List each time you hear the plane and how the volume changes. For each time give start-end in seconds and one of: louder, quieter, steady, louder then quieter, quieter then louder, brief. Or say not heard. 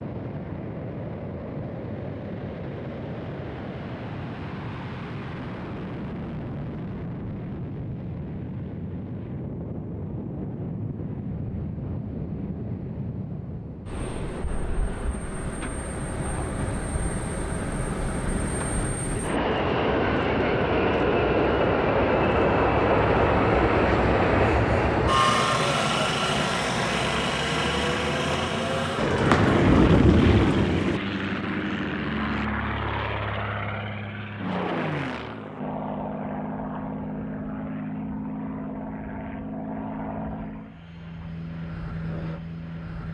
0.0-43.0 louder then quieter.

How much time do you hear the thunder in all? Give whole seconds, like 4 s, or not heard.
2 s.